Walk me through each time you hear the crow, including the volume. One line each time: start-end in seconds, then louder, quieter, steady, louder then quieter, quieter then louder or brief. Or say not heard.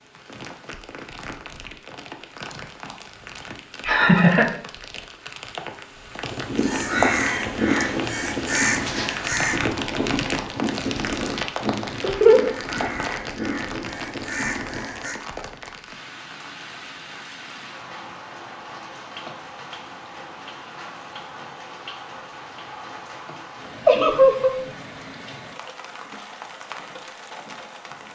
6.2-15.2 quieter.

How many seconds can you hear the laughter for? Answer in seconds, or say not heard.
2 s.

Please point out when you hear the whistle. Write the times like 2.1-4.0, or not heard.
not heard.